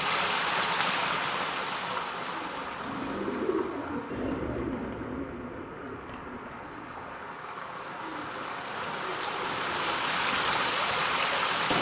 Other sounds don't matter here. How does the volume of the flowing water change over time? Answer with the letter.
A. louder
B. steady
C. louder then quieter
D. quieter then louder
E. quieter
D.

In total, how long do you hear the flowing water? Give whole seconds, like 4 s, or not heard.
12 s.